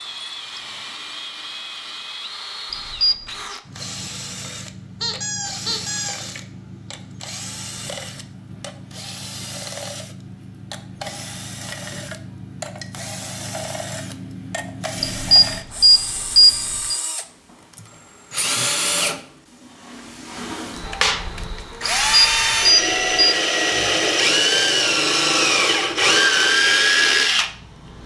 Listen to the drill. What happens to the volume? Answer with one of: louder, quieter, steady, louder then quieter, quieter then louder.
louder.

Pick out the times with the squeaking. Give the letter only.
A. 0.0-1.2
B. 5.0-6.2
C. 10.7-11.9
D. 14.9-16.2
B.